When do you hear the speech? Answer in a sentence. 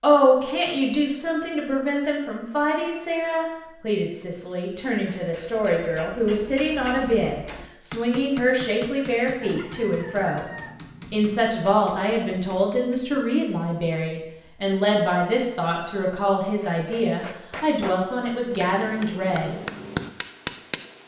The speech can be heard from 0.0 to 10.4 s and from 11.1 to 19.6 s.